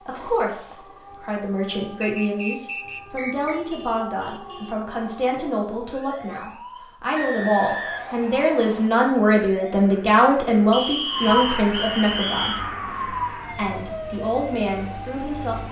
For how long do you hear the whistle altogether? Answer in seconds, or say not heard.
5 s.